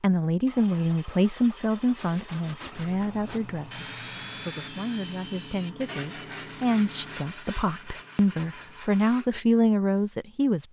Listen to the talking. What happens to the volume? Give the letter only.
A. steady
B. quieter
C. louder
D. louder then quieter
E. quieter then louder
E.